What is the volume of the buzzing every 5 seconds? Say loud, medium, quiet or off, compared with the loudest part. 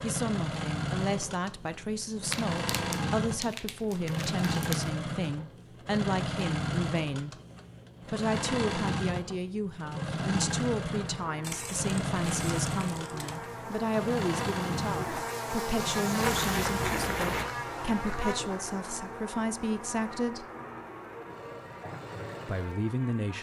off, off, medium, loud, medium.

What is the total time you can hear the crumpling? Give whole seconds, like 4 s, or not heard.
6 s.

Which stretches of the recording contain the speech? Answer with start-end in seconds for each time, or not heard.
0.0-7.3, 8.1-20.4, 22.4-23.3.